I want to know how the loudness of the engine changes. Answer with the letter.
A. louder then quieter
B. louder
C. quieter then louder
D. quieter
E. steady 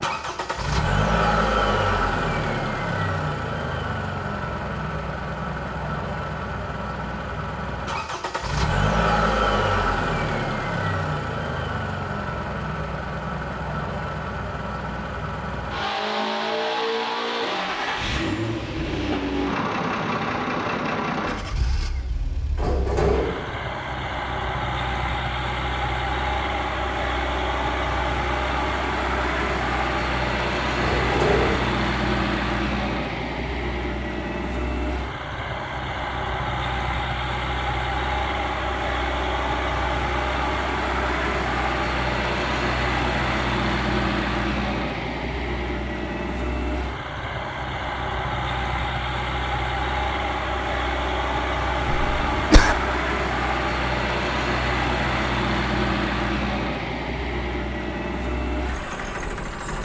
E.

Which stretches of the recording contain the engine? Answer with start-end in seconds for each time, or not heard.
0.0-59.8.